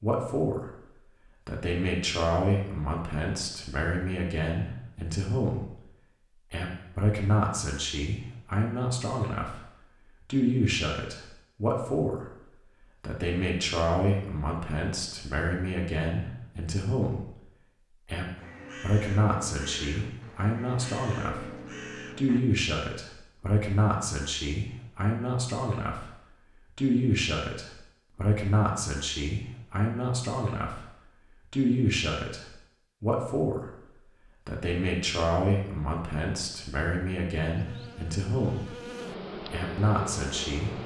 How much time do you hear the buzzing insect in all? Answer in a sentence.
The buzzing insect can be heard for 3 seconds in total.